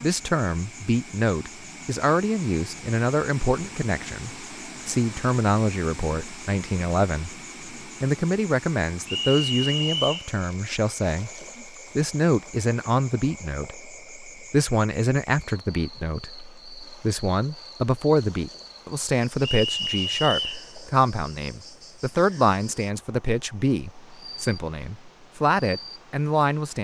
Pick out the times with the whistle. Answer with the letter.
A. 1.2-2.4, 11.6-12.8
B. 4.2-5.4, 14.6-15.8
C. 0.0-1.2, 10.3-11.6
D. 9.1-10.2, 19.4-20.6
D.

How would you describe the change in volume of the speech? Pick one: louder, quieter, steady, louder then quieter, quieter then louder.
steady.